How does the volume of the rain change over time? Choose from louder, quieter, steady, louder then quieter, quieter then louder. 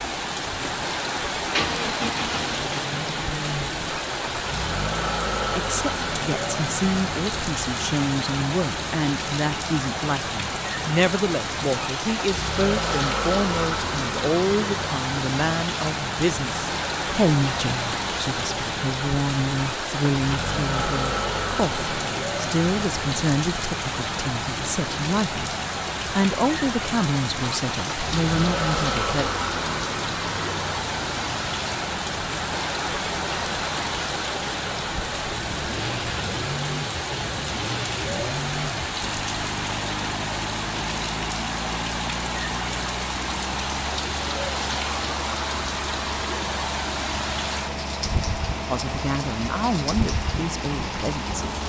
steady.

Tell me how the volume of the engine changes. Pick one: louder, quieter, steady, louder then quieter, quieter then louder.
steady.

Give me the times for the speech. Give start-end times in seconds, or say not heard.
5.5-29.3, 48.7-51.4.